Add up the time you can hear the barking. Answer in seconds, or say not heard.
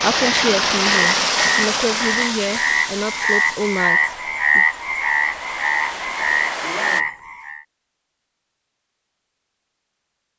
not heard.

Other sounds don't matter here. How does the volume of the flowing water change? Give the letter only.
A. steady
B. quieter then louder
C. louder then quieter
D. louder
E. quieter
B.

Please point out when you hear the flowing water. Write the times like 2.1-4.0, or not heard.
0.0-7.0.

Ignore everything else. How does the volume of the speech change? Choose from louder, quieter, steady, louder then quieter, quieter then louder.
steady.